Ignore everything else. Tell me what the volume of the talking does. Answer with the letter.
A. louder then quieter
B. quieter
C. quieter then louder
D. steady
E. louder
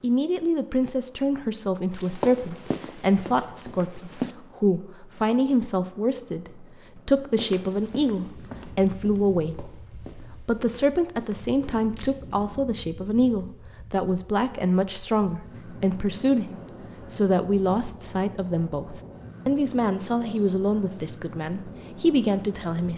D.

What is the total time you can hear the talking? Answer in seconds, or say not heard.
23 s.